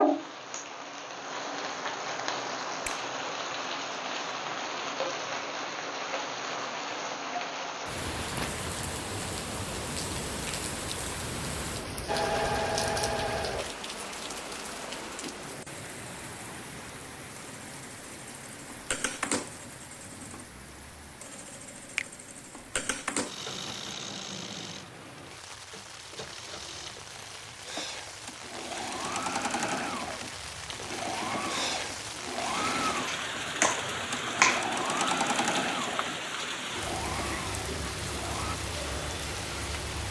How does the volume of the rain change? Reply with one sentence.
The loudness of the rain goes down, then up.